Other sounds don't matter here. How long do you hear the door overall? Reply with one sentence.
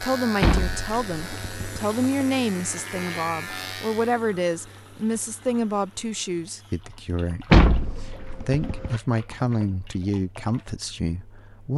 The door can be heard for 3 seconds in total.